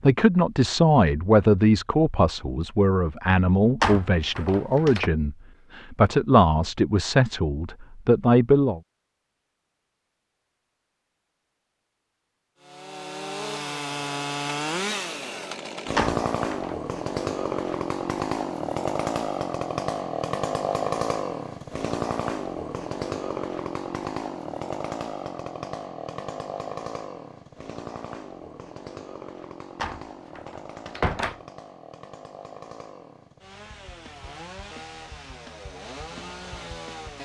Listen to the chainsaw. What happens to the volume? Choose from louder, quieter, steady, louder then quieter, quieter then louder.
quieter.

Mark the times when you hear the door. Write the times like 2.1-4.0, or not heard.
3.8-5.1, 15.9-16.8, 29.8-31.4.